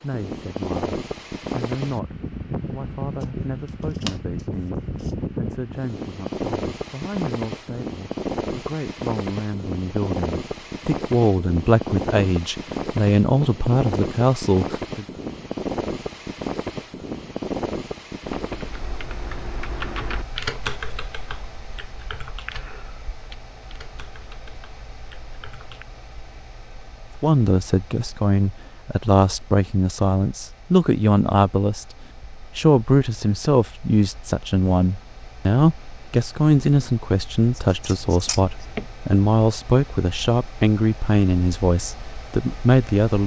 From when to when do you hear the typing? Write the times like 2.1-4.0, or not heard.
18.2-25.9.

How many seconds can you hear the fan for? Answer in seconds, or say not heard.
43 s.